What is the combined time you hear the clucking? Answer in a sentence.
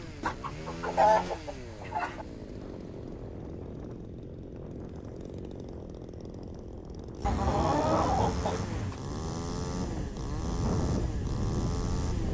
You can hear the clucking for 4 seconds altogether.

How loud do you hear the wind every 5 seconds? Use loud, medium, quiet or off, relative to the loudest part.
quiet, medium, loud.